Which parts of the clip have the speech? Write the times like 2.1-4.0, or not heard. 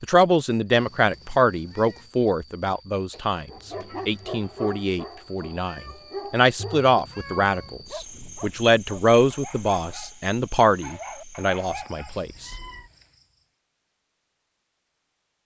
0.0-12.5.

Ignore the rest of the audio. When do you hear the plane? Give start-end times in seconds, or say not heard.
not heard.